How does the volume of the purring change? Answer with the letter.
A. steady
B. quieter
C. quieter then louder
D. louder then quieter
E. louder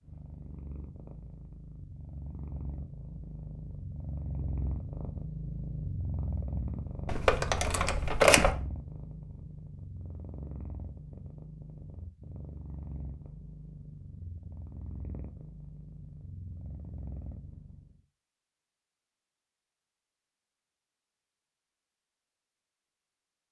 D.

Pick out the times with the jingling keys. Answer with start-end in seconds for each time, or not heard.
7.0-8.5.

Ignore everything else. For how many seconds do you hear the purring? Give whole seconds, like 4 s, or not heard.
18 s.